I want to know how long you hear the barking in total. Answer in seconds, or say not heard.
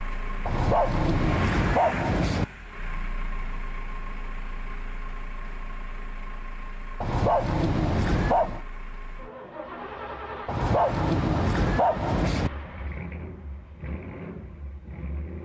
6 s.